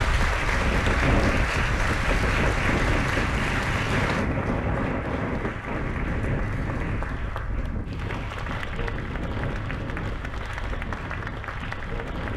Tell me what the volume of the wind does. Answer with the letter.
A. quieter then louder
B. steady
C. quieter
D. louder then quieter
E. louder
C.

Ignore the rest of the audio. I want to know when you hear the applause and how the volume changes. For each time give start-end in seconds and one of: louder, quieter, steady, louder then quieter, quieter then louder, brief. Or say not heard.
0.0-12.3 quieter.